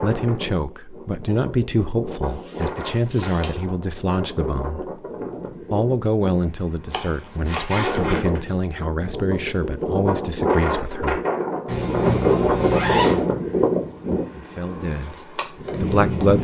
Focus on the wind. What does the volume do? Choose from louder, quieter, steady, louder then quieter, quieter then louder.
louder.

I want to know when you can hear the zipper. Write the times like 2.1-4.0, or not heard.
2.3-3.6, 7.0-8.4, 11.7-13.2.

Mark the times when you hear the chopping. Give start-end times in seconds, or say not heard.
6.9-7.8.